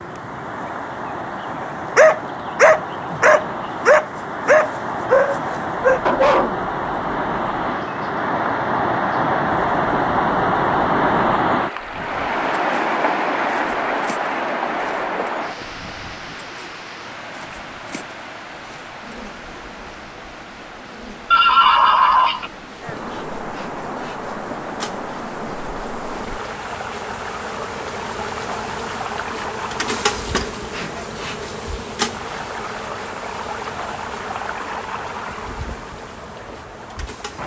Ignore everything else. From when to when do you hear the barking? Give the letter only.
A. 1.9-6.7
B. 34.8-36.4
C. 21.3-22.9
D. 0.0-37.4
A.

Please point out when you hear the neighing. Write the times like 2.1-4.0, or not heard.
21.3-22.9.